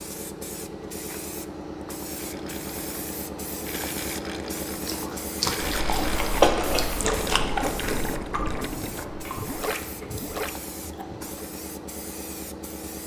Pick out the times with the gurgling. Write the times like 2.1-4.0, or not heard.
2.1-11.5.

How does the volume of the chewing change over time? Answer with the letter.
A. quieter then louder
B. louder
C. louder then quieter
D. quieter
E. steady
C.